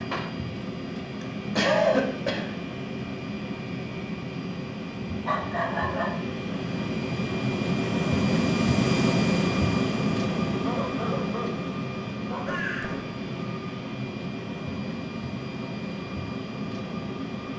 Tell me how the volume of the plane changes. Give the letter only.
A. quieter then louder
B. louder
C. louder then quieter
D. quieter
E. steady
C.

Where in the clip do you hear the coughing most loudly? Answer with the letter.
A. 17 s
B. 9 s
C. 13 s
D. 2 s
D.